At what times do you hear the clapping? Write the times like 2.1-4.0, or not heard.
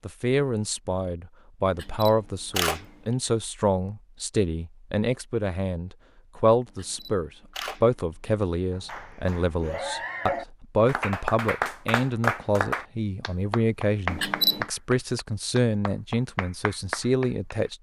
8.7-17.7.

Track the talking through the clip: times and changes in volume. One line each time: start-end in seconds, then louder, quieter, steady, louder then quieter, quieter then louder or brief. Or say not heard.
0.1-17.7 steady.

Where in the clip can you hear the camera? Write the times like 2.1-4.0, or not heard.
1.8-2.9, 6.7-8.3, 14.1-14.7.